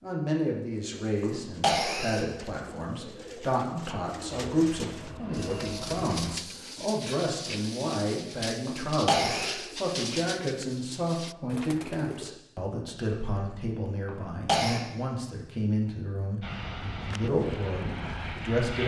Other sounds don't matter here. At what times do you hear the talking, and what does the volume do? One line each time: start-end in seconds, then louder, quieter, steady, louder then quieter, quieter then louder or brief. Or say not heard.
0.0-18.8 steady.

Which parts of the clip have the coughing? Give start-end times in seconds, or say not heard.
1.2-2.2, 8.7-9.7, 14.1-14.8.